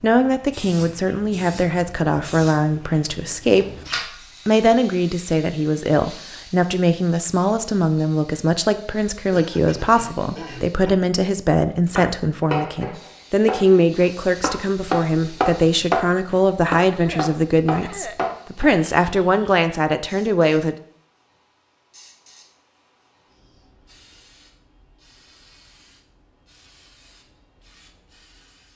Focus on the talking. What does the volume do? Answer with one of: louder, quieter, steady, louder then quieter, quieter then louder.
steady.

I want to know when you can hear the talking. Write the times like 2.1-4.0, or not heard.
0.0-3.6, 4.5-20.8.